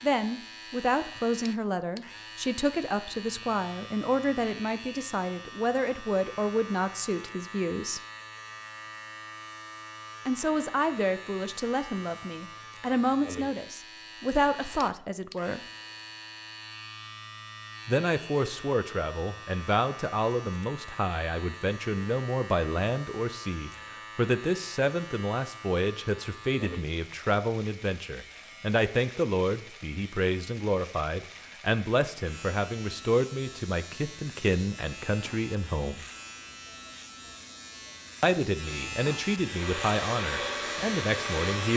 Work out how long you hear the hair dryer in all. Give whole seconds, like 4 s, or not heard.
2 s.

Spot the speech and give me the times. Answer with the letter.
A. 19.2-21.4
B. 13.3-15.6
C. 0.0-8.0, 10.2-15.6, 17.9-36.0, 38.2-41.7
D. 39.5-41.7
C.